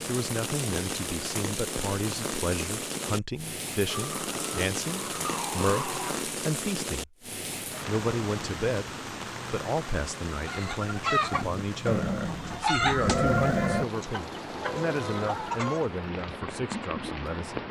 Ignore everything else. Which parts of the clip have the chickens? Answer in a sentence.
The chickens can be heard from 10.4 to 15.8 s.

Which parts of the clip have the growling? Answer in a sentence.
You can hear the growling from 3.9 to 6.3 s and from 11.8 to 13.8 s.